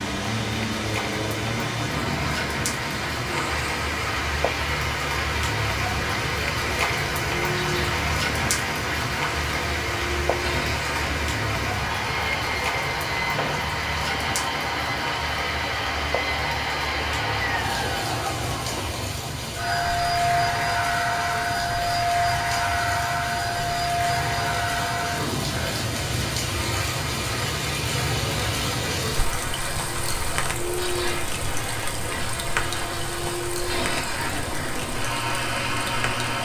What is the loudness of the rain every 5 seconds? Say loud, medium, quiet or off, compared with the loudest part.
loud, loud, loud, medium, medium, loud, medium, medium.